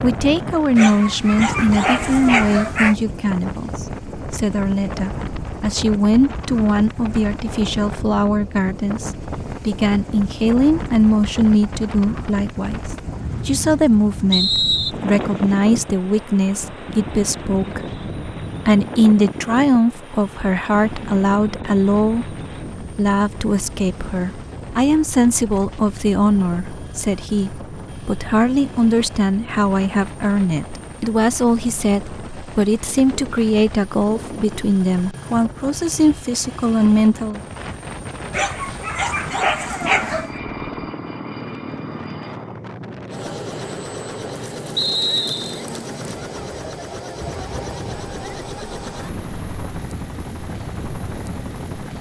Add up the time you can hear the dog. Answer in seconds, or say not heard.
4 s.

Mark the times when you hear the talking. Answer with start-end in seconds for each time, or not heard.
0.0-18.0, 18.6-37.4.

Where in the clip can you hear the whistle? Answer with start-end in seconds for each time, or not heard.
14.3-14.9, 44.8-45.6.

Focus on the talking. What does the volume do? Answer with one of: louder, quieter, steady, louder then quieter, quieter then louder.
steady.